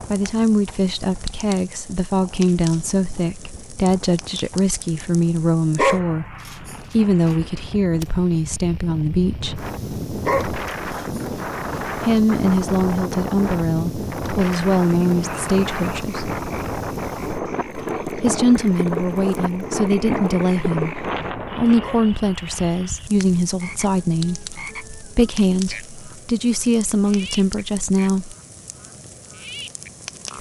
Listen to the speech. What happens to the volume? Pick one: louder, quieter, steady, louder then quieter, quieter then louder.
steady.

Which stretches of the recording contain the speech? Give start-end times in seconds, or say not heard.
0.1-9.6, 11.9-16.4, 18.1-28.4.